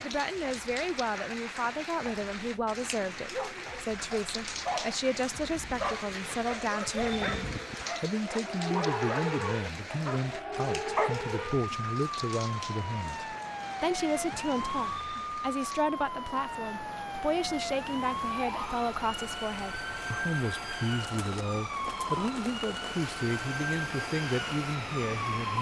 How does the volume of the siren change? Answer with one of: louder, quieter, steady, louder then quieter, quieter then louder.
louder.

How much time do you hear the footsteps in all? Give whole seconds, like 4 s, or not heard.
not heard.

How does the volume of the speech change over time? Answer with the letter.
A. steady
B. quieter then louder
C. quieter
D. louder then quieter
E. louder
A.